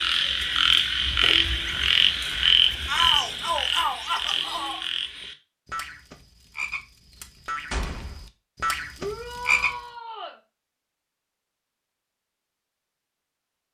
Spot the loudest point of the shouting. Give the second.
3 s.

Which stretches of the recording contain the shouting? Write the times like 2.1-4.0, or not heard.
2.9-4.8, 8.9-10.3.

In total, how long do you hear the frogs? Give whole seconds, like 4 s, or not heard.
10 s.